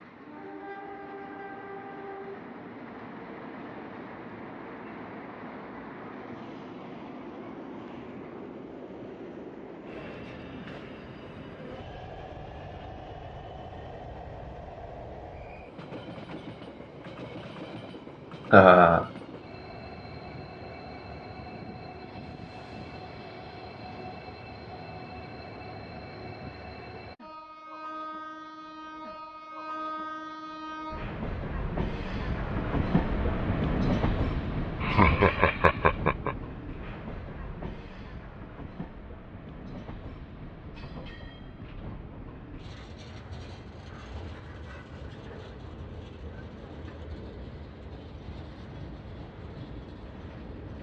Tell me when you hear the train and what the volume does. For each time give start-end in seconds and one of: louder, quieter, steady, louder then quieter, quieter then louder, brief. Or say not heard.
0.0-50.7 louder then quieter.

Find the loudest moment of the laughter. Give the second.
19 s.